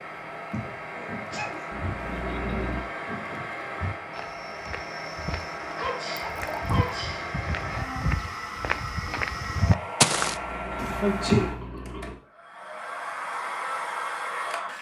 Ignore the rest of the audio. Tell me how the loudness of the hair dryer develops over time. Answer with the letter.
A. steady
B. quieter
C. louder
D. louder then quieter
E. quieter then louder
A.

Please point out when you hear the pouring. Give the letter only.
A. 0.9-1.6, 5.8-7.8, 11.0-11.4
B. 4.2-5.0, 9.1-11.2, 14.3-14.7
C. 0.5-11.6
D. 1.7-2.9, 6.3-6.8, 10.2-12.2
D.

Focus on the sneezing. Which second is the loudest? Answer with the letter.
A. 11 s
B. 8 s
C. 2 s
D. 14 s
A.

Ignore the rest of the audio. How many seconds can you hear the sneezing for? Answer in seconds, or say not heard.
3 s.